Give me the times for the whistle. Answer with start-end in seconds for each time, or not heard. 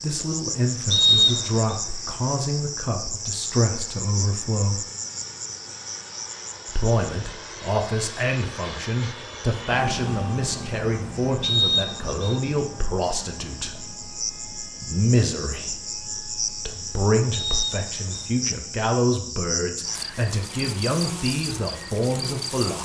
0.9-1.8, 11.4-12.4, 17.3-18.2.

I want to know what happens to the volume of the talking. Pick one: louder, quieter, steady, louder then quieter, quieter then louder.
steady.